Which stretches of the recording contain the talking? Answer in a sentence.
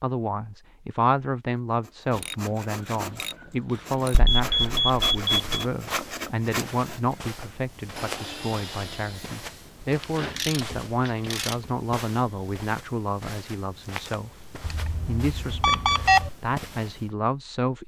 You can hear the talking from 0.0 to 17.8 s.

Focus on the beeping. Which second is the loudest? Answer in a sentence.
The loudest moment of the beeping is at 16 seconds.